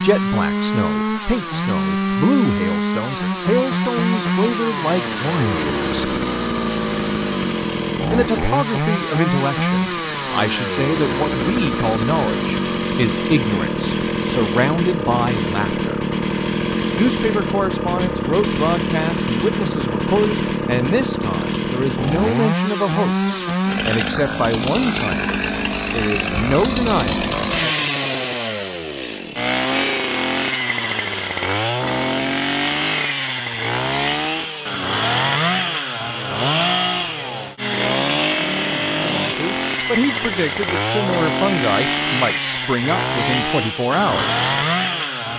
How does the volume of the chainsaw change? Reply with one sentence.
The volume of the chainsaw stays about the same.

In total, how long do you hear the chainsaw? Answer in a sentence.
The chainsaw can be heard for 45 seconds in total.